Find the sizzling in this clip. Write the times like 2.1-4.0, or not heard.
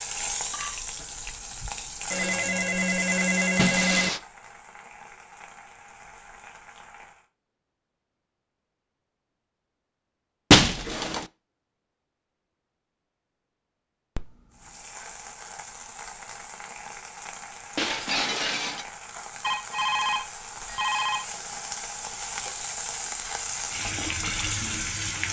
0.0-7.2, 14.5-25.2.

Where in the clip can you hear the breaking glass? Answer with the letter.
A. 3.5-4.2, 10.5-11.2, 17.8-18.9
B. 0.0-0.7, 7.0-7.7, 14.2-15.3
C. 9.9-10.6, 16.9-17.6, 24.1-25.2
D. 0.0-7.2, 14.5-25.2
A.